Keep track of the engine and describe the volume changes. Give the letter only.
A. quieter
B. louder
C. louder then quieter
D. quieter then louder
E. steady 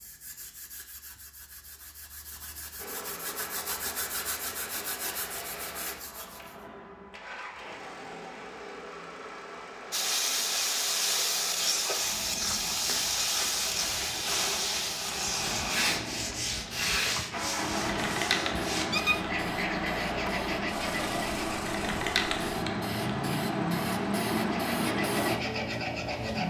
B.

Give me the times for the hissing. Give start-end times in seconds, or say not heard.
9.9-26.4.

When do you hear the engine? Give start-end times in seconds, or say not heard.
2.8-26.4.